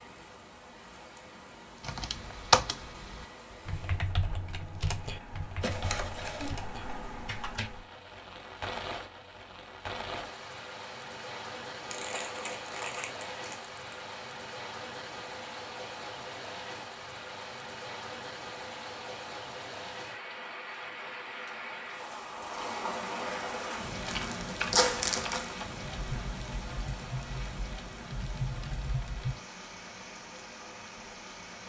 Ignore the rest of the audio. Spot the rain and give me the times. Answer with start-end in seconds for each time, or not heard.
0.0-31.6.